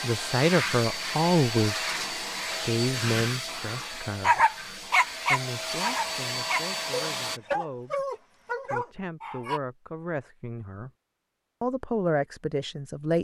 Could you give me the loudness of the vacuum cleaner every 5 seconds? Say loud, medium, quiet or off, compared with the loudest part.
loud, loud, off.